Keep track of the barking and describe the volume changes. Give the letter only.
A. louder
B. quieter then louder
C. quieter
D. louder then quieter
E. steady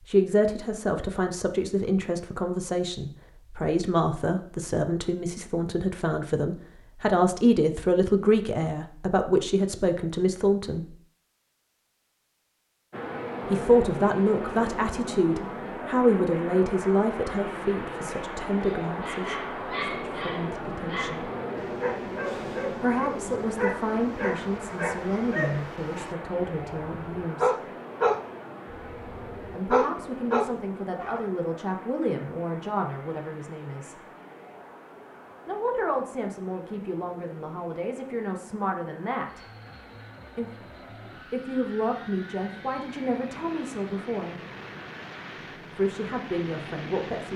A.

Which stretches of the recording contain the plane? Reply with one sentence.
The plane can be heard from 12.9 to 47.3 s.